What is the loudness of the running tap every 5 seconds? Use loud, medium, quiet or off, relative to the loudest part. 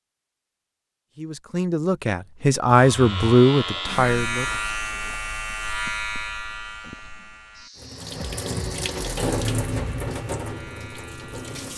off, loud, medium.